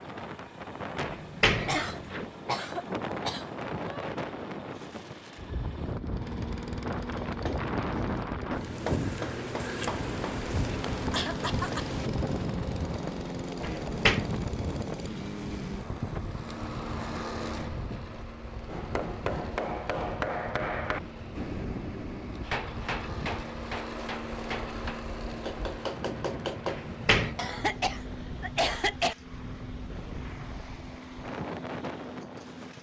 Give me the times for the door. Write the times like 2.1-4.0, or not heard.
1.0-2.3, 13.6-14.2, 26.6-27.4.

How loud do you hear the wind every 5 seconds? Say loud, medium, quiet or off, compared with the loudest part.
loud, loud, loud, medium, medium, medium, medium.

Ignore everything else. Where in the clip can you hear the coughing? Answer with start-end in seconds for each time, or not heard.
1.6-4.2, 11.1-11.8, 27.4-29.1.